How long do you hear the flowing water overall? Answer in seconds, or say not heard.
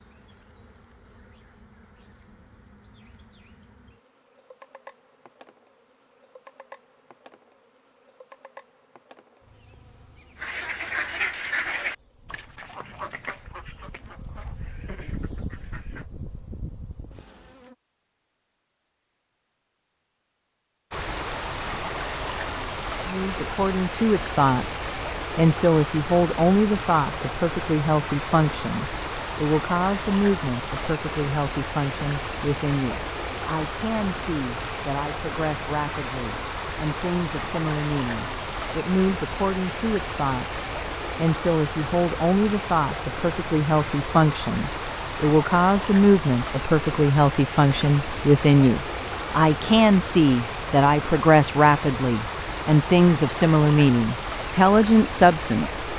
35 s.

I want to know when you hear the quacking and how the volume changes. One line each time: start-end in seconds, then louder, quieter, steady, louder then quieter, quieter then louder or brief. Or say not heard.
10.3-16.1 quieter.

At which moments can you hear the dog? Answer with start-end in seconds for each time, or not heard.
not heard.